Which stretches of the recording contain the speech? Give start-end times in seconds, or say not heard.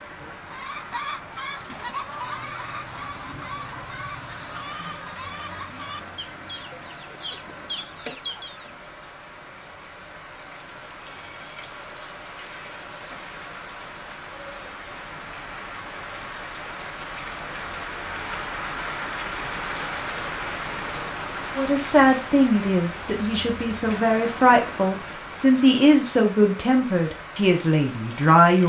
21.6-28.6.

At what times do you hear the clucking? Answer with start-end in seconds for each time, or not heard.
0.5-8.8.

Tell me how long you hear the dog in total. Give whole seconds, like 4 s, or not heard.
not heard.